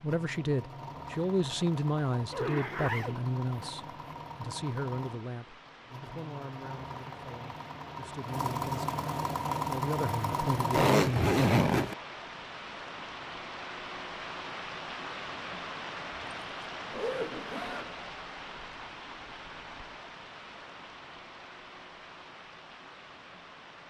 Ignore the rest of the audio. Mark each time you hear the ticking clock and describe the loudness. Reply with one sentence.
The ticking clock can't be heard in this clip.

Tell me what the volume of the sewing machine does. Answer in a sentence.
The loudness of the sewing machine goes up.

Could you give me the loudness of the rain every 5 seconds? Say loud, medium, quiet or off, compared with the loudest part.
quiet, medium, loud, loud, medium.